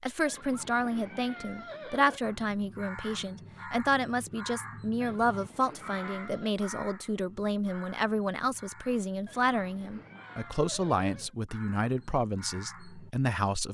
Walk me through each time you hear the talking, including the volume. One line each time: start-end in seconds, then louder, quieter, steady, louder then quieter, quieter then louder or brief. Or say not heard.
0.0-13.7 steady.